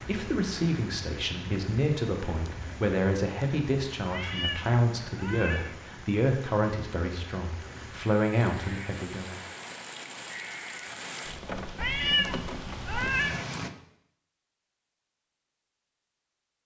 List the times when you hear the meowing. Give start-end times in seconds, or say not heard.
4.0-5.8, 11.8-13.4.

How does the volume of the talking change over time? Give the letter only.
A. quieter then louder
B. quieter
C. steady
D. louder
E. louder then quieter
C.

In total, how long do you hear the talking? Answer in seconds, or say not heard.
9 s.